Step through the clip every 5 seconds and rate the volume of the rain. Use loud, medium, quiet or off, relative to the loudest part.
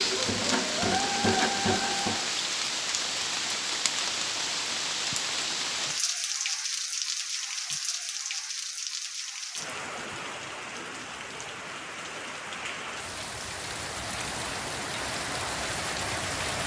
loud, loud, medium, loud.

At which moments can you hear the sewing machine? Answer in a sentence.
The sewing machine can be heard from 0.0 to 2.3 s.